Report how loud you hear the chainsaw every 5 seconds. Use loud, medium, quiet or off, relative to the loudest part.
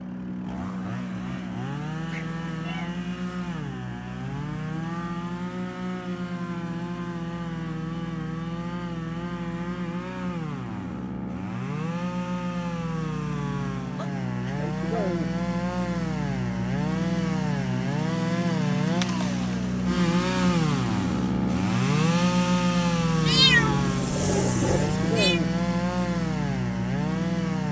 medium, medium, medium, loud, loud, loud.